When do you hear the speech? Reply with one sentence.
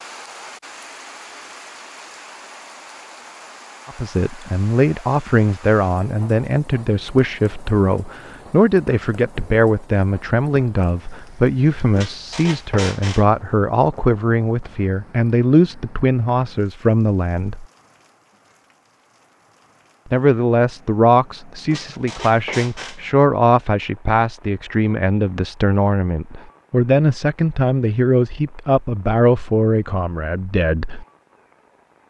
You can hear the speech from 3.9 to 17.6 s and from 20.1 to 31.1 s.